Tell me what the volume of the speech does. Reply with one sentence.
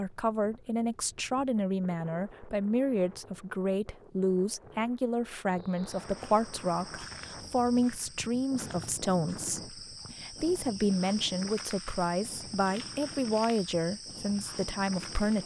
The volume of the speech stays about the same.